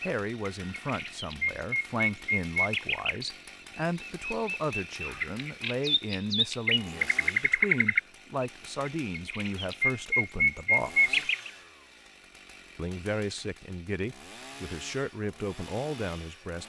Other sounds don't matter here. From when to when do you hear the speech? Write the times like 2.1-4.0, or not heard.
0.0-11.3, 12.8-16.6.